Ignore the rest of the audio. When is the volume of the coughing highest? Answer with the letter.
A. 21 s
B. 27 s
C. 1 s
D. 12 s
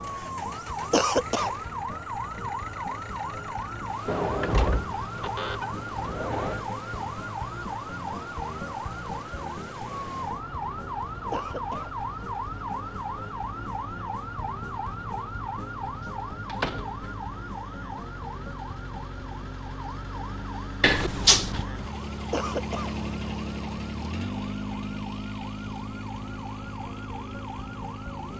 C.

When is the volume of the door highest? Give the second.
21 s.